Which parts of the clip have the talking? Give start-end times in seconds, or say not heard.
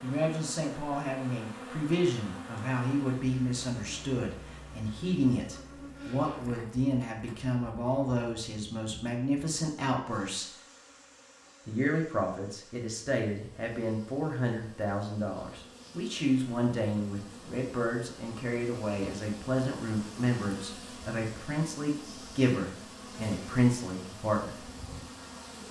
0.0-10.4, 11.7-24.6.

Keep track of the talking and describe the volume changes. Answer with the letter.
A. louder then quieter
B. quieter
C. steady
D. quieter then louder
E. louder
C.